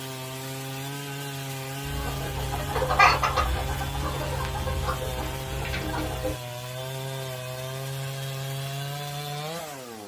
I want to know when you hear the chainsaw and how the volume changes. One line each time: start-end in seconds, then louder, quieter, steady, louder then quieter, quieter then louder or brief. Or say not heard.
0.0-10.0 steady.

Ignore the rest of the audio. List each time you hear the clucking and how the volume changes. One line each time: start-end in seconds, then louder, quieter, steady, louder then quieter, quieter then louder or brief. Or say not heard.
1.8-6.3 louder then quieter.